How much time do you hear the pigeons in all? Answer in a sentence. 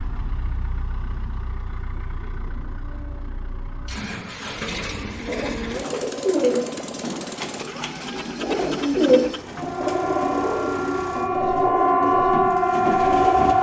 You can hear the pigeons for 8 seconds altogether.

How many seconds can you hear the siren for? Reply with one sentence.
The siren can be heard for 4 seconds in total.